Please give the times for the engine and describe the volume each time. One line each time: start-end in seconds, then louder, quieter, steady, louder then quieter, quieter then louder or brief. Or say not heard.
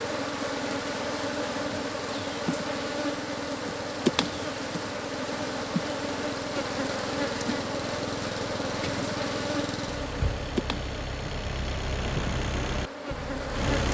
0.1-13.8 louder.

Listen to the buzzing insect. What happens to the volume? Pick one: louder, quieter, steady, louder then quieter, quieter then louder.
quieter.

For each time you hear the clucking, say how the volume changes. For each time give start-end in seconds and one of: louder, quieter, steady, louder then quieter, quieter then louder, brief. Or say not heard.
not heard.